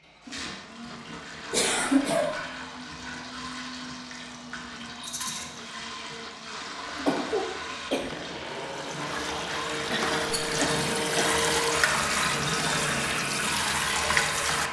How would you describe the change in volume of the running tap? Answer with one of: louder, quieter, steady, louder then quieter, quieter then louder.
louder.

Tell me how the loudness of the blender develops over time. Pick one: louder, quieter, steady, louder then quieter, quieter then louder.
louder.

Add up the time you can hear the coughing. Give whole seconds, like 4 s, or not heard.
4 s.